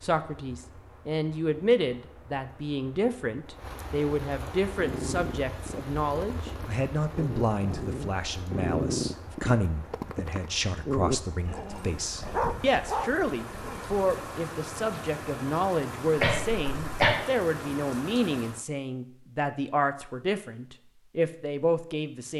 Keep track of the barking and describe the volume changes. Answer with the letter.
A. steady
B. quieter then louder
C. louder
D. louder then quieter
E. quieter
C.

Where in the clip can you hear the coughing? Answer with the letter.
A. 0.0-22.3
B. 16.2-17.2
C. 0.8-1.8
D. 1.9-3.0
B.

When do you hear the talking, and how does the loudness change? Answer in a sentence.
You can hear the talking from 0.0 to 22.3 s, at a steady volume.